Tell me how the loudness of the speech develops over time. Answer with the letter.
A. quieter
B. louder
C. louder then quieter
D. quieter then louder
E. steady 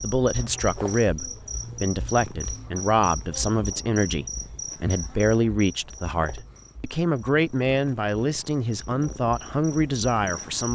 E.